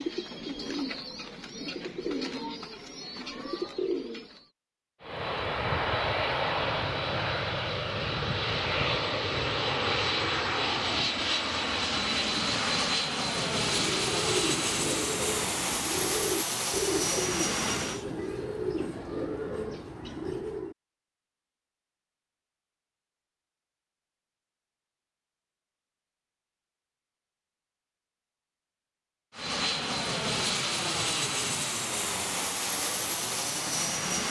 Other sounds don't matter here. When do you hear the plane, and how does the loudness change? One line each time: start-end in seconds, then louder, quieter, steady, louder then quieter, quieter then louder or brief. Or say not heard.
5.0-18.1 steady
29.3-34.2 steady.